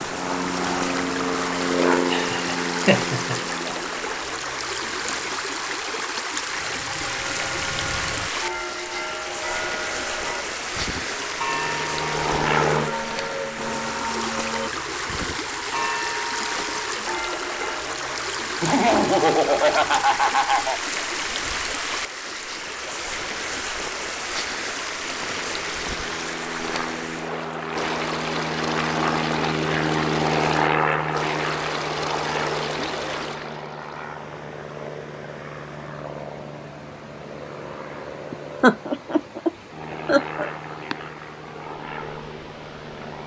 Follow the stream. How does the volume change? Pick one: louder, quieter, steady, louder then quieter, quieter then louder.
quieter.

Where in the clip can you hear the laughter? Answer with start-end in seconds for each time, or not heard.
2.1-3.8, 18.6-20.8, 38.3-41.0.